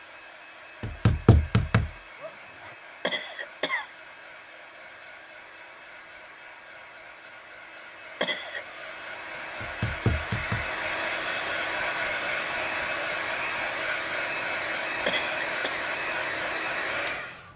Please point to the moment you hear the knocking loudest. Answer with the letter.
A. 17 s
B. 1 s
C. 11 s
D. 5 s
B.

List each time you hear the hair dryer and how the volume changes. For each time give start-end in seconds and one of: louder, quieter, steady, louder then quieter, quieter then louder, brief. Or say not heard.
0.0-17.5 louder.